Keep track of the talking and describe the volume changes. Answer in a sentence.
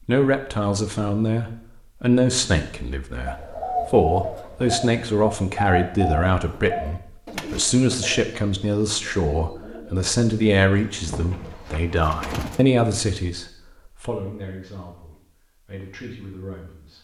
The volume of the talking goes down.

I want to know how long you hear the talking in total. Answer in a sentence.
The talking can be heard for 17 seconds in total.